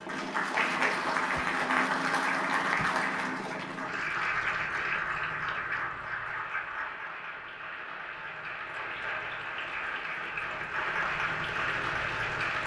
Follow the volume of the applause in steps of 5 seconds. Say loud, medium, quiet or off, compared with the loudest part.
loud, medium, loud.